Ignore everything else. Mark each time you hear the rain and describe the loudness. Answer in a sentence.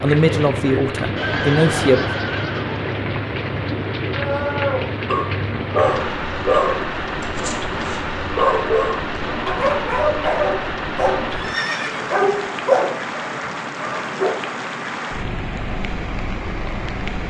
The rain can be heard from 0.0 to 17.2 s, at a steady volume.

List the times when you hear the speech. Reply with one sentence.
You can hear the speech from 0.0 to 2.2 s.